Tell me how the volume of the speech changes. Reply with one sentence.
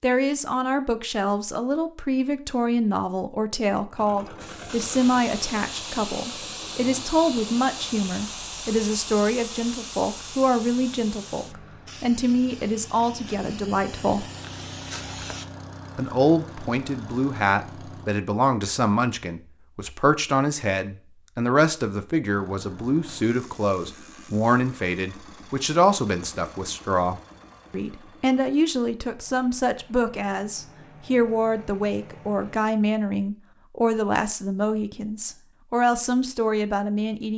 The loudness of the speech stays about the same.